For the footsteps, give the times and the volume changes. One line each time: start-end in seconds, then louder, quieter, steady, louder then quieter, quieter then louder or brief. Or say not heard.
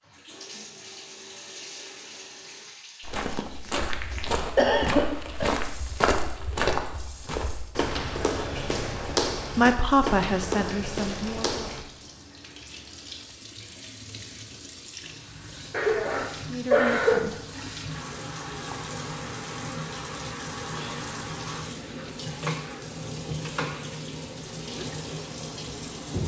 3.0-11.8 steady.